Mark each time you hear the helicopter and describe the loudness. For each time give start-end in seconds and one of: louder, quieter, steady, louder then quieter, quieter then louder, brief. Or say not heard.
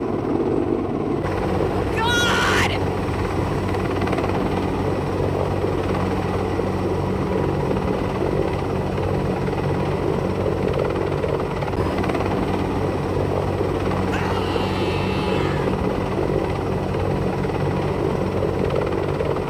0.0-19.4 steady.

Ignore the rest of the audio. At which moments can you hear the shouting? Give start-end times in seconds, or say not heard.
1.8-2.8, 14.1-15.8.